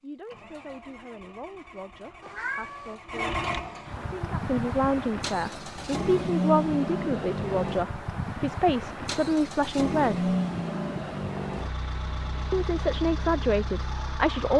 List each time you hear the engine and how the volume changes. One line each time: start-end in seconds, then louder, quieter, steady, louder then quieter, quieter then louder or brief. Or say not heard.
0.2-14.5 louder then quieter.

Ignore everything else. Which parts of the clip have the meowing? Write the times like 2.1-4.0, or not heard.
2.2-3.0.